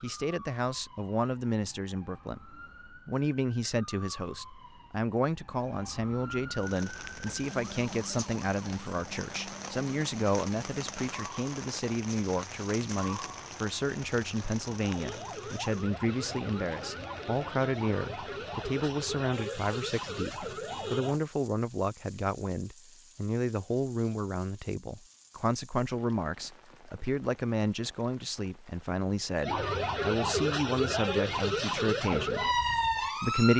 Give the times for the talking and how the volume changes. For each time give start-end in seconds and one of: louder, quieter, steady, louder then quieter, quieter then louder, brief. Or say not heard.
0.0-33.5 steady.